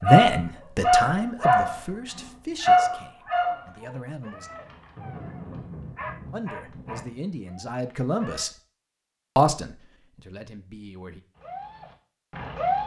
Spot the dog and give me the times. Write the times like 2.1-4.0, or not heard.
0.0-1.8, 2.6-8.4, 11.4-12.8.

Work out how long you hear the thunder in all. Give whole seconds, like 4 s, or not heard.
3 s.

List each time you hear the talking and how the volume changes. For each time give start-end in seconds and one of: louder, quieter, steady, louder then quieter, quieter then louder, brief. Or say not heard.
0.0-4.5 quieter
6.3-8.5 brief
9.3-11.2 brief.